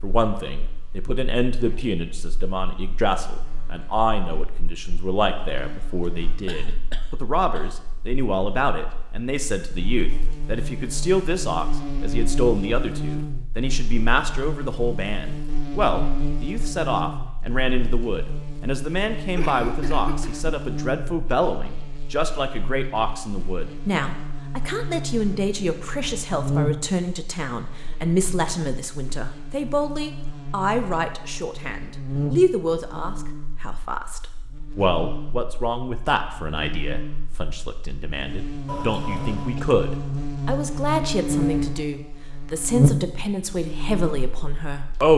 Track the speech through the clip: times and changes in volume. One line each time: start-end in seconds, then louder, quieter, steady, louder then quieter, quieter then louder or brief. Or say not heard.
0.0-45.1 steady.